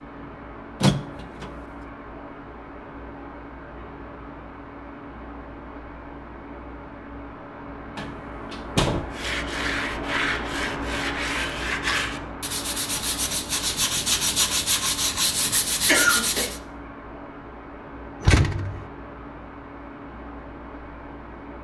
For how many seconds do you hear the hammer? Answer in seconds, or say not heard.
not heard.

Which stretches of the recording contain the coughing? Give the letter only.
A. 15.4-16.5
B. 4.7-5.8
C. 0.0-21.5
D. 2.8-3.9
A.